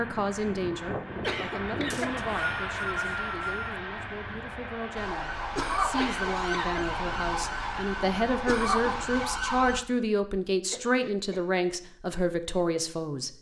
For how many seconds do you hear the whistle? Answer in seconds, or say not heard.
2 s.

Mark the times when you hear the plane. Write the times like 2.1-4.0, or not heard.
0.0-9.3.